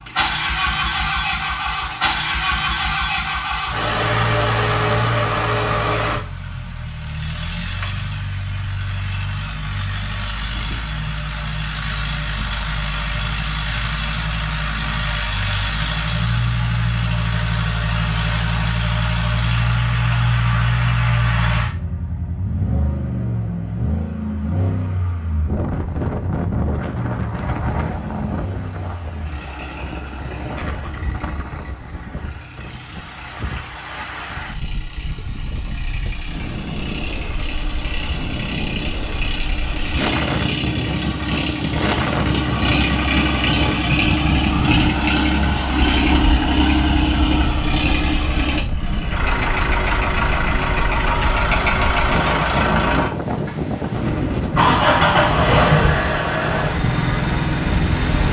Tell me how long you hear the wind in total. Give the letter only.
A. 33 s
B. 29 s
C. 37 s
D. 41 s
A.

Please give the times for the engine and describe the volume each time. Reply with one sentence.
You can hear the engine from 0.0 to 58.2 s, getting quieter then louder.